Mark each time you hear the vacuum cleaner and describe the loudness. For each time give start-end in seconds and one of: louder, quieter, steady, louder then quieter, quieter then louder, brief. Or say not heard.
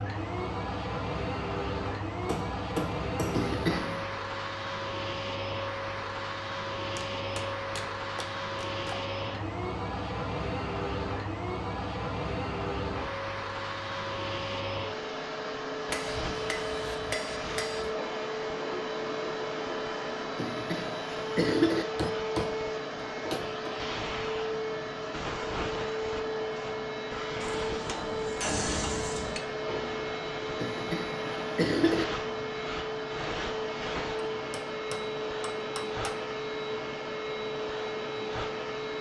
0.0-38.9 steady.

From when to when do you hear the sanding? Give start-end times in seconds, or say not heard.
not heard.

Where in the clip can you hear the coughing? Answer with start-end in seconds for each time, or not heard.
3.3-4.0, 20.4-21.9, 30.6-32.0.